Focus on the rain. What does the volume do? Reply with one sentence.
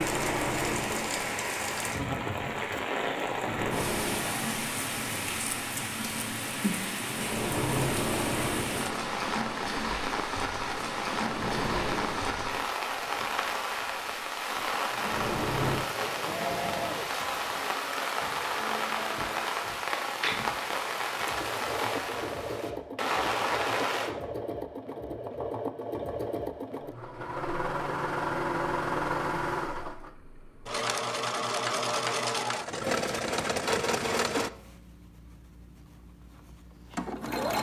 The loudness of the rain stays about the same.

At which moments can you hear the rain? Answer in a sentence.
You can hear the rain from 0.0 to 24.1 s.